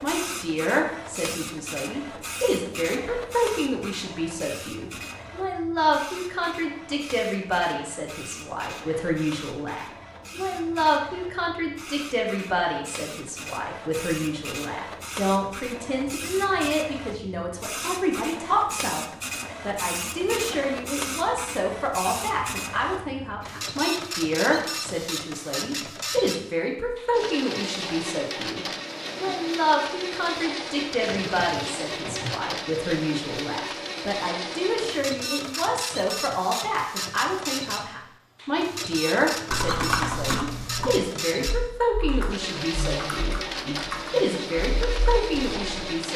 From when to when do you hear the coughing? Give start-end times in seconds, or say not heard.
31.1-32.4.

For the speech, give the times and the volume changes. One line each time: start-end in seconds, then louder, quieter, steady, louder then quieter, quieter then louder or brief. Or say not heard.
0.0-46.1 steady.